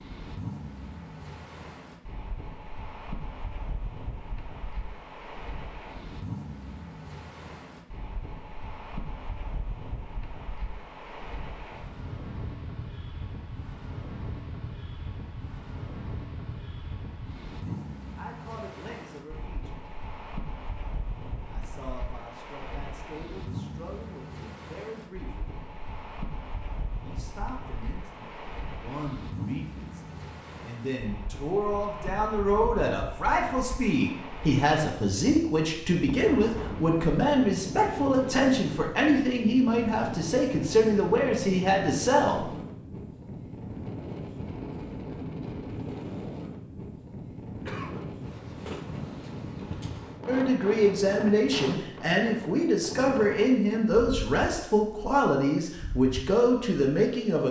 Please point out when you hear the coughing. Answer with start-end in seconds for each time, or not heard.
47.6-48.1.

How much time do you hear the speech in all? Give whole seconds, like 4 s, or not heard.
29 s.